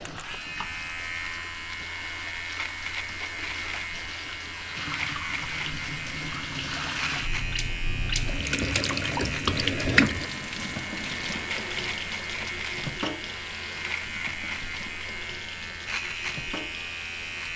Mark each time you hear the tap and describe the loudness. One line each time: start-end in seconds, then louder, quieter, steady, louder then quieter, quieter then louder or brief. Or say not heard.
0.0-17.5 louder then quieter.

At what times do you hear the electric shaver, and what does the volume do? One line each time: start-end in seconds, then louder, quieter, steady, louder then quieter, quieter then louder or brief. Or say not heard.
0.0-17.5 steady.